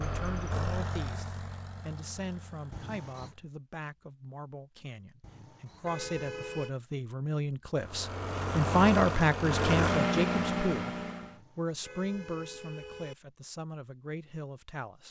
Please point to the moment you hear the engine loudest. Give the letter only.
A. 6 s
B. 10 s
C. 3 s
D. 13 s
B.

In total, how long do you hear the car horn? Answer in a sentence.
You can hear the car horn for 4 seconds altogether.